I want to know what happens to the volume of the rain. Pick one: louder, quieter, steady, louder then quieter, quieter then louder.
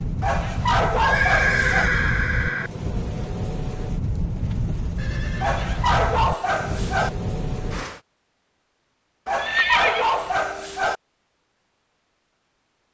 steady.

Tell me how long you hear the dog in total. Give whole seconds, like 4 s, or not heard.
5 s.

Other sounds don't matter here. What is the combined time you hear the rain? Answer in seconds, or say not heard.
8 s.